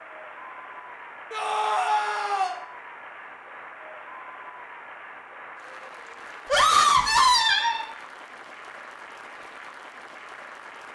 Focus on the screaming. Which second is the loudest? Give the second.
7 s.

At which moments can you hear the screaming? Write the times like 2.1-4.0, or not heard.
1.3-2.5, 6.5-7.8.